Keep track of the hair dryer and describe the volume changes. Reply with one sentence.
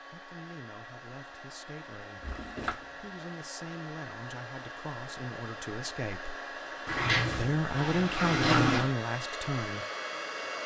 The loudness of the hair dryer goes up.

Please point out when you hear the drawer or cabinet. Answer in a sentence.
The drawer or cabinet can be heard from 2.2 to 2.8 s and from 6.8 to 8.9 s.